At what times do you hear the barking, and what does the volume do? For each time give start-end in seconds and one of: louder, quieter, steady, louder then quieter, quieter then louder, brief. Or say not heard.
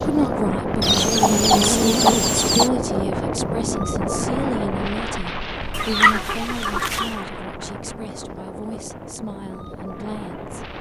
not heard.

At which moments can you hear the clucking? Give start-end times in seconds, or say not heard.
0.8-2.7, 5.7-7.2.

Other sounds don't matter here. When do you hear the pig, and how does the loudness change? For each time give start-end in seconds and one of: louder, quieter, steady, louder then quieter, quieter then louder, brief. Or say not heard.
not heard.